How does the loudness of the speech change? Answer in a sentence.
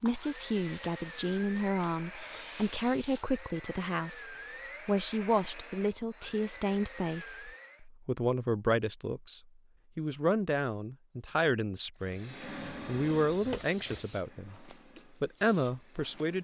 The volume of the speech stays about the same.